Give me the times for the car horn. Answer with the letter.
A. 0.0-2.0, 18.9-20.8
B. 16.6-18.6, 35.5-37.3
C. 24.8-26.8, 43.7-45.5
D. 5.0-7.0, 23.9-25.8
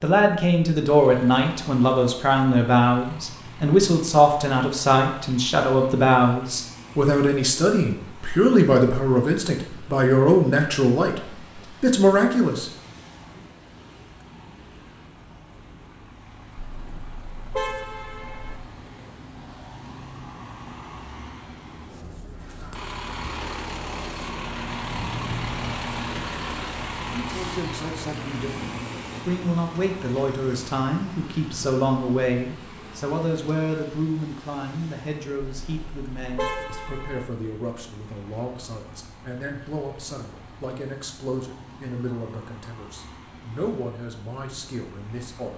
B.